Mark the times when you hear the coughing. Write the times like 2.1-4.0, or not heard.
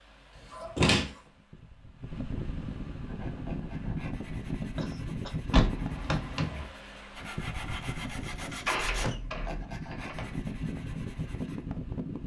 0.5-1.3, 4.8-5.5, 8.8-9.4.